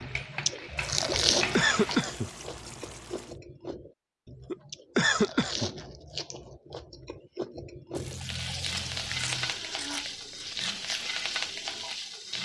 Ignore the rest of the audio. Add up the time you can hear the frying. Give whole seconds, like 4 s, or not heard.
6 s.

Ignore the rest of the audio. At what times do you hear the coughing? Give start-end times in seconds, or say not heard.
1.1-2.3, 4.5-5.7, 9.1-10.1.